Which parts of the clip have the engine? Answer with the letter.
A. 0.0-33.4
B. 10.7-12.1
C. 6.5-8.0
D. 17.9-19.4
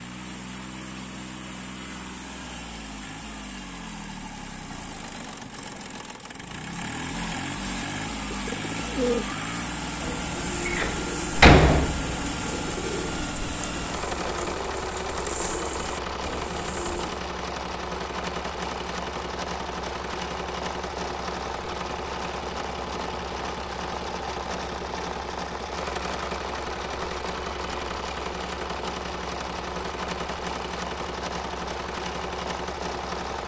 A.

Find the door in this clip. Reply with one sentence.
You can hear the door from 10.7 to 12.1 s.